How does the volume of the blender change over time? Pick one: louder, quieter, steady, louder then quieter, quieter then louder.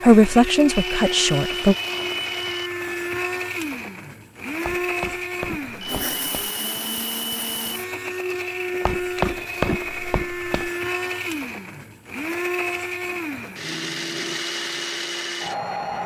steady.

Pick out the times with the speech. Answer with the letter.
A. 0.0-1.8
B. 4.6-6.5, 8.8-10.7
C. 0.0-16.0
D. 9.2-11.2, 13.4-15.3
A.